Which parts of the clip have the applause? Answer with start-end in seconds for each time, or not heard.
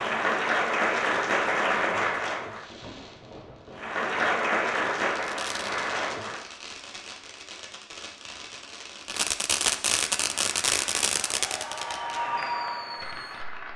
0.0-2.7, 3.8-6.5, 10.1-13.7.